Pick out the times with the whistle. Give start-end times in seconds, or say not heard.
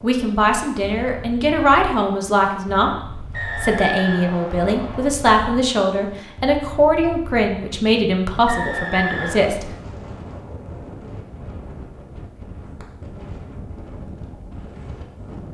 3.3-5.1, 8.4-9.5.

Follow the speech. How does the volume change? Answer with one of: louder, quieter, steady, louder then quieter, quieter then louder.
steady.